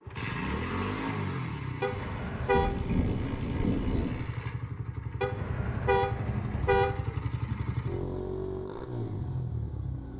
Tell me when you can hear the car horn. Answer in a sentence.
You can hear the car horn from 1.8 to 2.8 s and from 5.2 to 7.0 s.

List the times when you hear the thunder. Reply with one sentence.
You can hear the thunder from 2.5 to 4.2 s.